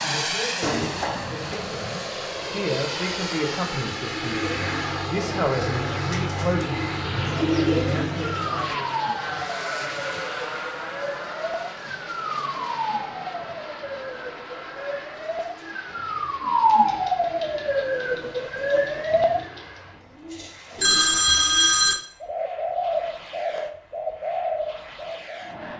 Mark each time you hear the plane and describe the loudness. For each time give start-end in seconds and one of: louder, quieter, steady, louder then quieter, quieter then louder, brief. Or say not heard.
0.0-25.7 quieter.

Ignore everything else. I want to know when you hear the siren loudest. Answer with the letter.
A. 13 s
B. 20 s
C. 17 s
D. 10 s
C.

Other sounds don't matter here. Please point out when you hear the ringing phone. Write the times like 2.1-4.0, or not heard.
0.6-1.8, 20.8-21.9.